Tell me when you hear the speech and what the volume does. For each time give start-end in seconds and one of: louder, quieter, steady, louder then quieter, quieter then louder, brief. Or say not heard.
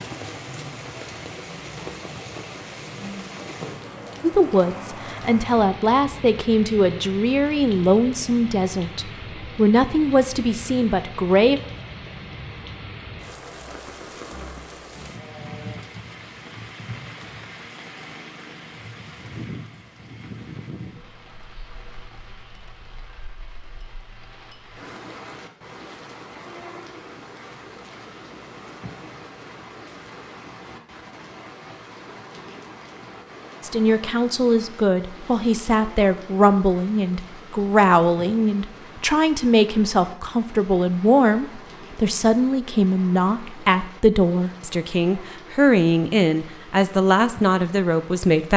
4.2-11.6 steady
33.6-48.5 steady.